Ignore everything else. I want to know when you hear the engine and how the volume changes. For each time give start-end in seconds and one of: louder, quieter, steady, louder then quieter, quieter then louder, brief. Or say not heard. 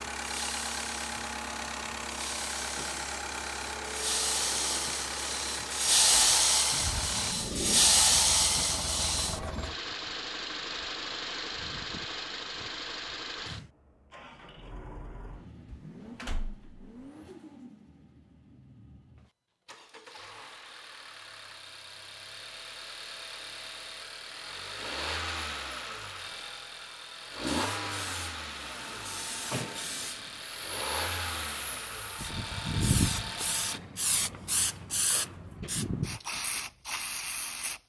0.0-33.8 quieter then louder.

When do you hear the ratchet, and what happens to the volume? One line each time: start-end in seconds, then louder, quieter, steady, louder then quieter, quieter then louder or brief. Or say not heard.
not heard.